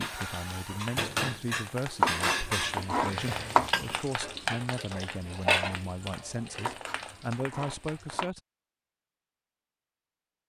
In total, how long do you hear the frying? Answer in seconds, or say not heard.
8 s.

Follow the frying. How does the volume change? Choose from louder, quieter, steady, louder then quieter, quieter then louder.
louder then quieter.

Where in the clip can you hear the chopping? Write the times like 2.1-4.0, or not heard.
2.0-3.7, 6.7-8.3.